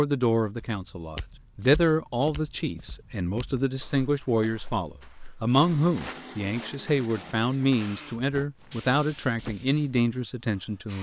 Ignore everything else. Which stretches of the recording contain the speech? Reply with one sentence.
The speech can be heard from 0.0 to 10.9 s.